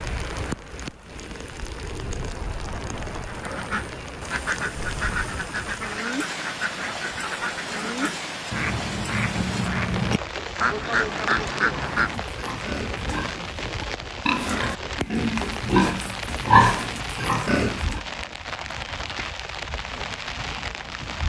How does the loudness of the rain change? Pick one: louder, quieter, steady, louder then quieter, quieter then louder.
steady.